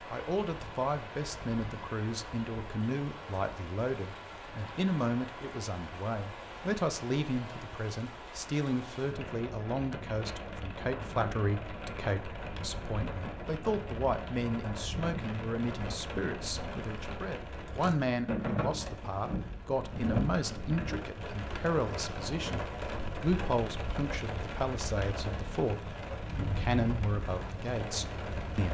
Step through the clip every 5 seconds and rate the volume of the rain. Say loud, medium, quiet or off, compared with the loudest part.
medium, medium, loud, loud, loud, loud.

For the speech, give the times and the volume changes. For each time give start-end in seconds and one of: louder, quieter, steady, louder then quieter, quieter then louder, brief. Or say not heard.
0.1-28.6 steady.